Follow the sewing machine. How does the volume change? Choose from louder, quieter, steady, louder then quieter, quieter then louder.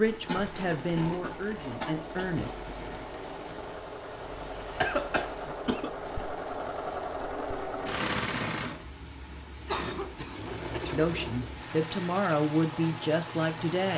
louder then quieter.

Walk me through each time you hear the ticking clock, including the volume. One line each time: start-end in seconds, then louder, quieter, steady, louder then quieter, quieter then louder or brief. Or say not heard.
not heard.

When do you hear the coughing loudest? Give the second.
5 s.